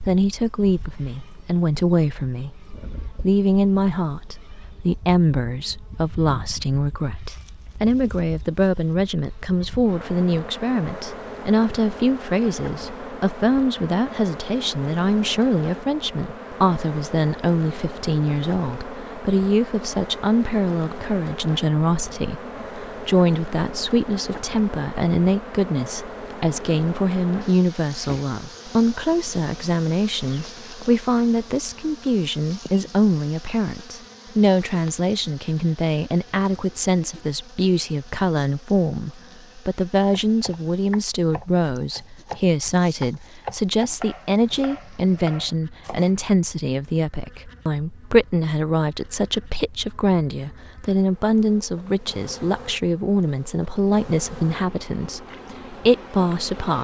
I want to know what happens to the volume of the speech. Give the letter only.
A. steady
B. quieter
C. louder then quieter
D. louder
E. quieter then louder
A.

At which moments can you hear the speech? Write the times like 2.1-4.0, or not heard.
0.0-56.7.